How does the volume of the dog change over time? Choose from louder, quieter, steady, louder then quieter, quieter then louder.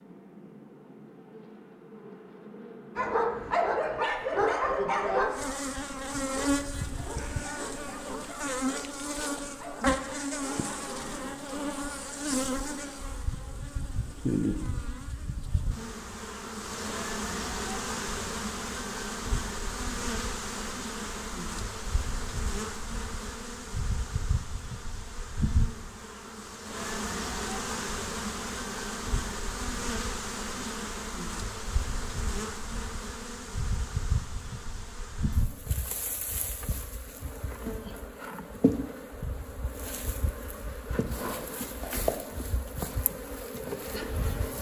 quieter.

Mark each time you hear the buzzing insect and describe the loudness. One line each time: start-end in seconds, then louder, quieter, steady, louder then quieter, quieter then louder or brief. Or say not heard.
0.0-44.5 steady.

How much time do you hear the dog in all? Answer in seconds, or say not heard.
8 s.